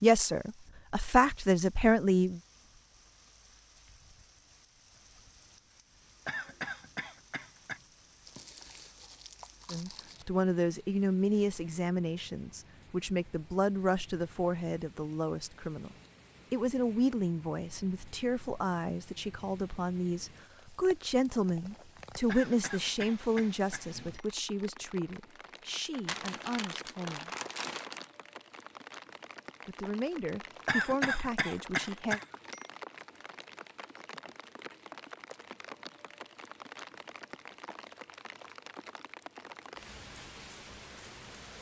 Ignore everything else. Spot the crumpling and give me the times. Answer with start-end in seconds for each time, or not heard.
8.2-10.2, 26.1-28.1.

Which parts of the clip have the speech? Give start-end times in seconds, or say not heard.
0.0-2.4, 9.7-27.3, 29.6-32.2.